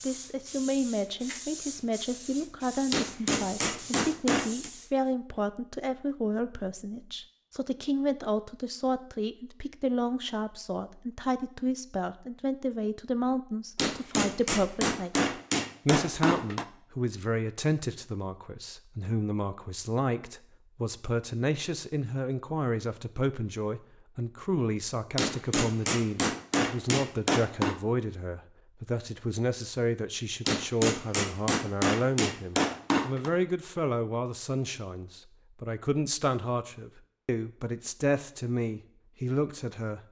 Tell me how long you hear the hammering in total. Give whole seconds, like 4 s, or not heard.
10 s.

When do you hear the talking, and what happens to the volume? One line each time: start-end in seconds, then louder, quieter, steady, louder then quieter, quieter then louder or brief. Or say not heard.
0.0-40.0 steady.